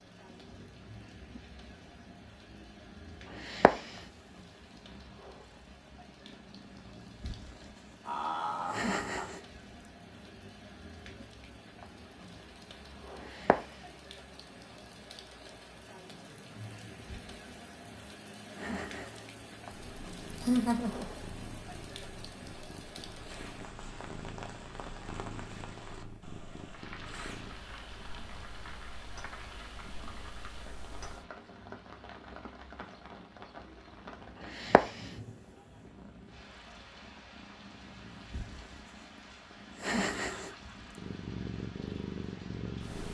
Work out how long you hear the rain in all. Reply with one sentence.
The rain can be heard for 43 seconds in total.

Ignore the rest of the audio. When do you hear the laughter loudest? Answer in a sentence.
The volume of the laughter peaks at 21 seconds.